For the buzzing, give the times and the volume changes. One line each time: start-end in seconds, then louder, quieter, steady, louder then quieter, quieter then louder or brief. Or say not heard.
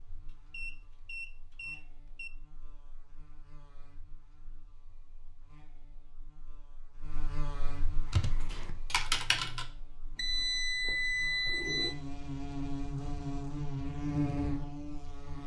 0.0-15.4 louder.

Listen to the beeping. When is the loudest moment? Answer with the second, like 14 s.
11 s.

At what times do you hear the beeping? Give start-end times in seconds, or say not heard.
0.5-2.3, 10.2-11.9.